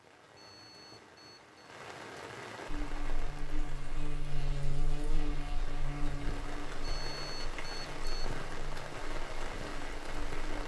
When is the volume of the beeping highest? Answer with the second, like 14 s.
7 s.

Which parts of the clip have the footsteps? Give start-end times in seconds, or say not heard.
not heard.